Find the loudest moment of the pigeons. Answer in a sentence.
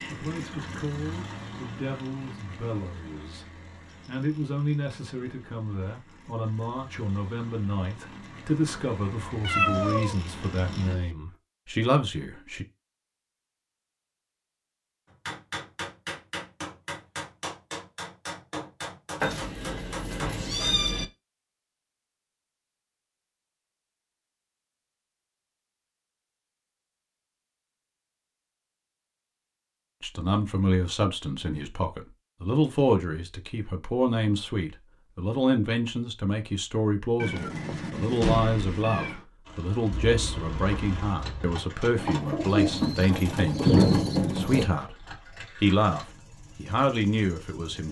The volume of the pigeons peaks at 44 seconds.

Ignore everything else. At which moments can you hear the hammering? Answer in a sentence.
The hammering can be heard from 15.1 to 20.4 s.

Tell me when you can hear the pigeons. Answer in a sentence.
You can hear the pigeons from 39.9 to 44.7 s.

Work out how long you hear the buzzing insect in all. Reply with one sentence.
The buzzing insect can't be heard in this clip.